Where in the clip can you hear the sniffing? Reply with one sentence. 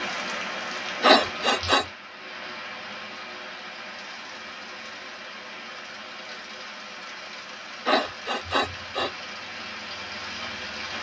You can hear the sniffing from 1.0 to 1.9 s and from 7.8 to 9.1 s.